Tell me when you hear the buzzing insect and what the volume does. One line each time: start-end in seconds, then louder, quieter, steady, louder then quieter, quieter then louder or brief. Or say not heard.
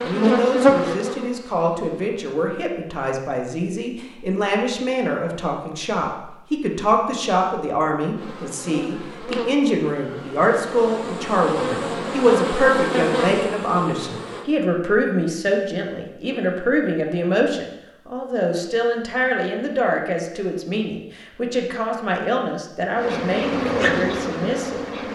0.0-1.9 brief
8.2-14.4 quieter then louder
22.9-25.1 brief.